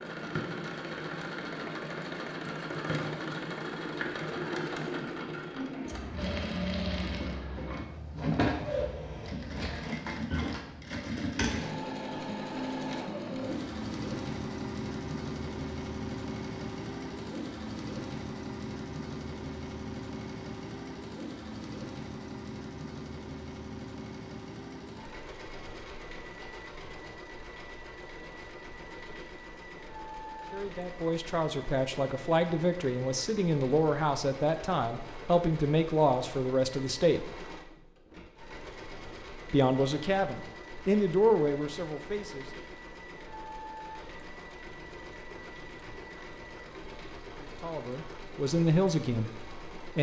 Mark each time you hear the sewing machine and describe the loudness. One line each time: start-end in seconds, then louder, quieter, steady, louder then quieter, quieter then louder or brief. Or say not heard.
0.0-49.9 quieter.